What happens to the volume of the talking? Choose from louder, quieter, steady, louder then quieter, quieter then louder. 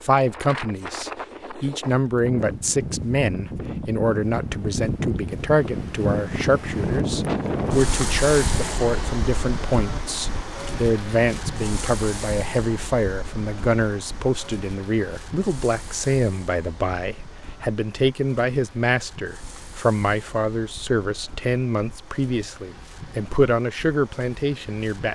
steady.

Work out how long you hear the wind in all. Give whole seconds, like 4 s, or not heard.
25 s.